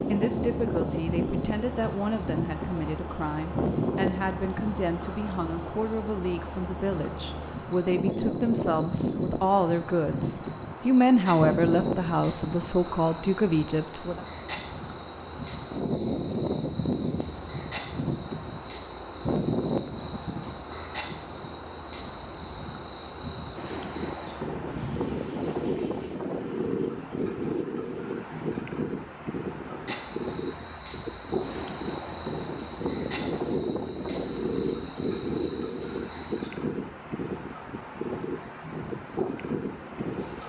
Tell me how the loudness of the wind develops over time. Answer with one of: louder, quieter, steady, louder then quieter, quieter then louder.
steady.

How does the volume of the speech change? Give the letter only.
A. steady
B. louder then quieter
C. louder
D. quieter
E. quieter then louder
C.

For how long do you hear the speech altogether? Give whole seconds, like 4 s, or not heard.
14 s.